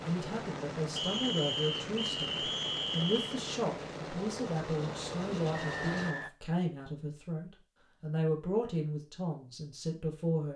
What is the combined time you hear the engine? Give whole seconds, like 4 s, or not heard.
6 s.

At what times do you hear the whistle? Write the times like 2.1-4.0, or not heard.
0.9-3.4, 5.5-6.3.